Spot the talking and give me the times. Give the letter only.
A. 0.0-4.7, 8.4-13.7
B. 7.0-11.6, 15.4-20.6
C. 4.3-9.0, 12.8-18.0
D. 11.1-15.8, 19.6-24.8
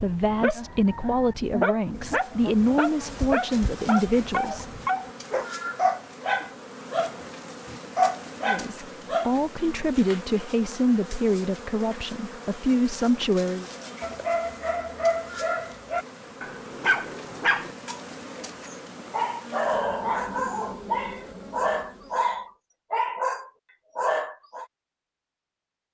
A.